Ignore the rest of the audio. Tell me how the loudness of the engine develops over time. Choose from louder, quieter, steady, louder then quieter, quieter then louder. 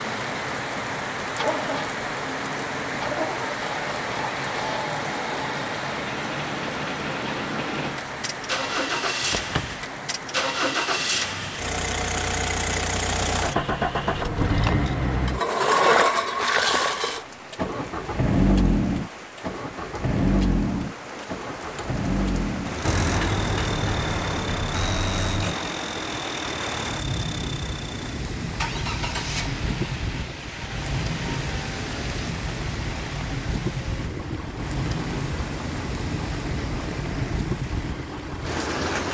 louder then quieter.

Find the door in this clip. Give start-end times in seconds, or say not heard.
9.2-9.8, 22.8-25.6.